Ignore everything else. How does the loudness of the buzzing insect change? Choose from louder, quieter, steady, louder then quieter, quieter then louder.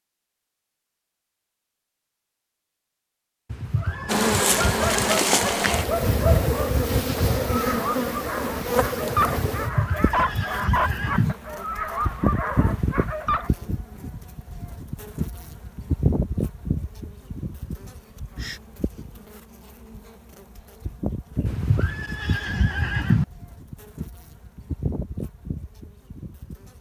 quieter.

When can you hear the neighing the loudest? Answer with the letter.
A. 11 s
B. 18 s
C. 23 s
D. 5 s
C.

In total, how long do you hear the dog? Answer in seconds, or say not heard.
10 s.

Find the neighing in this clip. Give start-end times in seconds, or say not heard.
3.5-5.2, 9.5-11.3, 21.4-23.2.